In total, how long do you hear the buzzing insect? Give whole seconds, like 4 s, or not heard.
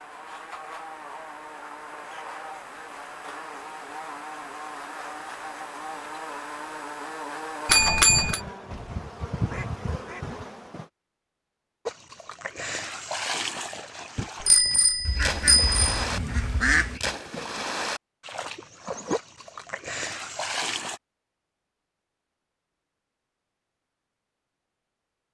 11 s.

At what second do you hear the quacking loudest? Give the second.
17 s.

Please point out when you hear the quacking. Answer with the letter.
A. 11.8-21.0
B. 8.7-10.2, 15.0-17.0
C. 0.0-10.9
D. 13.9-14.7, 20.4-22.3
B.